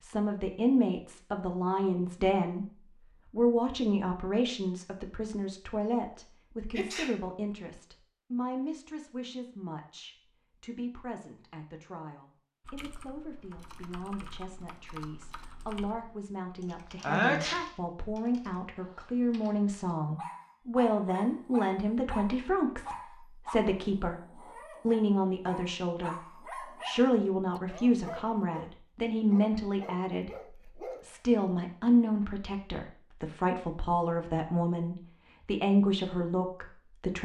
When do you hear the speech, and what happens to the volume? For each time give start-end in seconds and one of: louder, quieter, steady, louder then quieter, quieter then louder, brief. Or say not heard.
0.0-2.6 brief
3.3-37.1 quieter then louder.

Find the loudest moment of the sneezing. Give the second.
17 s.